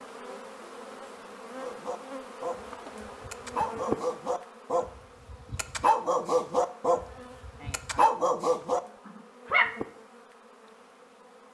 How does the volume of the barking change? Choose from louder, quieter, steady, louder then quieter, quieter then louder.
louder.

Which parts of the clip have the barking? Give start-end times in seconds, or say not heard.
1.6-9.8.